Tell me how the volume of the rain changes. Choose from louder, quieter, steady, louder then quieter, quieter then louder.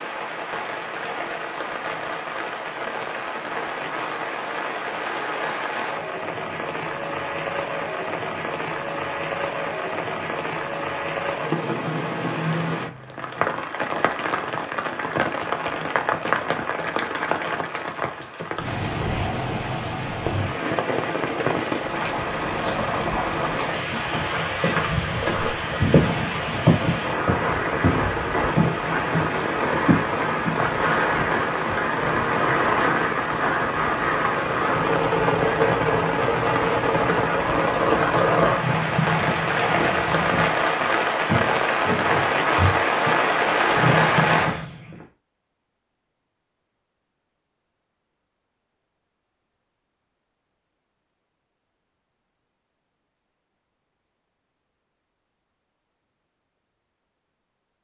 louder.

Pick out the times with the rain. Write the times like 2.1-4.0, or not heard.
0.0-44.6.